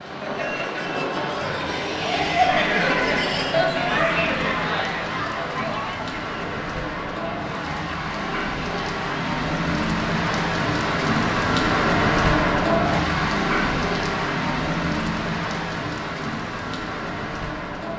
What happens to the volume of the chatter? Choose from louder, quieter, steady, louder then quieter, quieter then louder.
louder then quieter.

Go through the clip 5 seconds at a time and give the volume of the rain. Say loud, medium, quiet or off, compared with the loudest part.
medium, medium, loud, medium.